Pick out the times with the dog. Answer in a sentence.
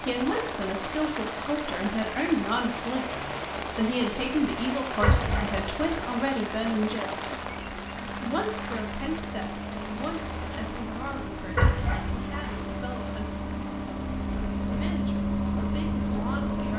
The dog can be heard from 5.0 to 6.0 s and from 11.6 to 12.4 s.